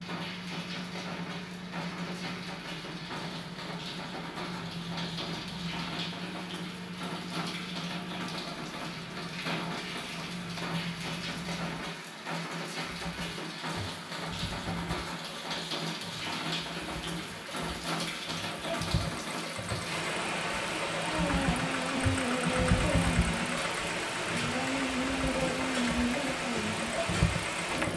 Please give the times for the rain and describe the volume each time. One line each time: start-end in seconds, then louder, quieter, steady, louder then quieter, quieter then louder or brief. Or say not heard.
0.0-27.9 louder.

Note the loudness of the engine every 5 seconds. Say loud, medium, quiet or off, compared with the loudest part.
medium, medium, medium, medium, loud, loud.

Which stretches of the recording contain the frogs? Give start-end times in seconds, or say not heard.
not heard.